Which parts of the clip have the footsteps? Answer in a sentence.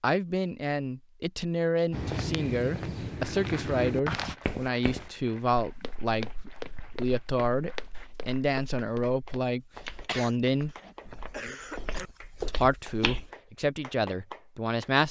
You can hear the footsteps from 1.9 to 13.3 s.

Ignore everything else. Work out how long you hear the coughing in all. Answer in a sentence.
The coughing can be heard for 2 seconds in total.